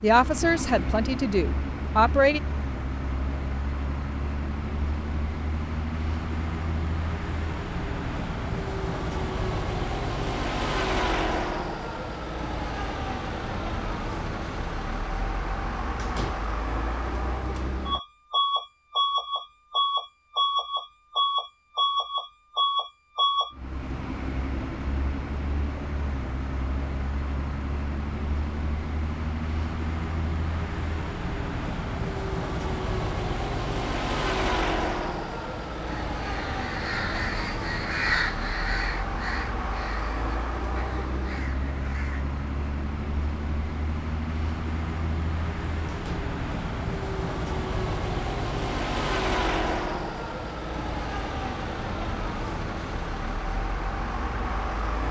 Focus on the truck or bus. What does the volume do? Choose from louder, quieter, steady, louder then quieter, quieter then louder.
steady.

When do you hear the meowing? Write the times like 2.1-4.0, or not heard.
not heard.